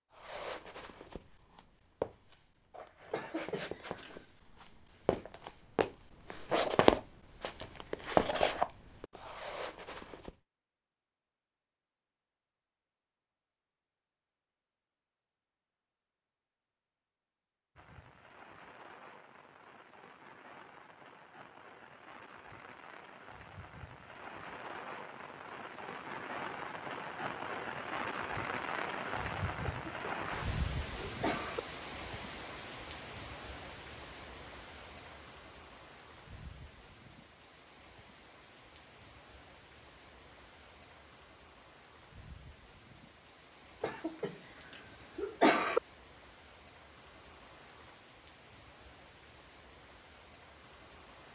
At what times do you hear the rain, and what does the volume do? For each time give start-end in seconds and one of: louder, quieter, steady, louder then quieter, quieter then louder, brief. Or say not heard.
17.8-51.2 louder then quieter.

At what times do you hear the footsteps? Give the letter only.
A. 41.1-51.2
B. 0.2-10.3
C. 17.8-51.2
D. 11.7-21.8
B.